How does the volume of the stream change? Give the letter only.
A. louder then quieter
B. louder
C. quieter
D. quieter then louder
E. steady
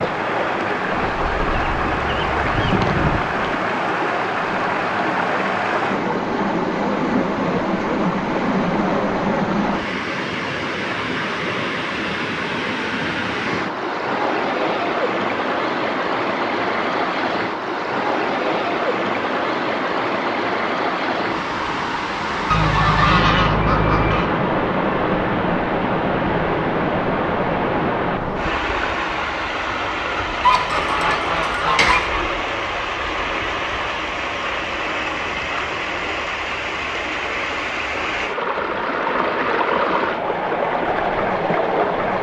E.